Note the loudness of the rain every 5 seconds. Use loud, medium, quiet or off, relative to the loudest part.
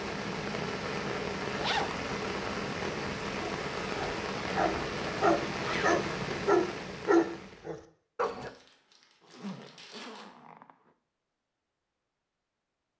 loud, loud, off.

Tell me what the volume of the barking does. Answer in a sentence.
The volume of the barking goes up, then down.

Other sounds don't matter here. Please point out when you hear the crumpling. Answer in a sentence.
The crumpling can be heard from 8.3 to 10.2 s.